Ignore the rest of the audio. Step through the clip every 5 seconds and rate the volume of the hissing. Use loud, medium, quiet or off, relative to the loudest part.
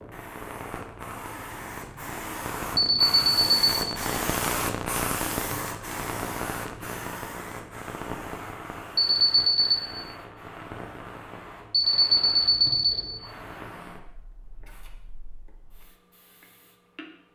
loud, loud, medium, quiet.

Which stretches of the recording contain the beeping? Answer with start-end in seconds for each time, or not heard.
2.8-4.0, 8.9-9.8, 11.7-13.0.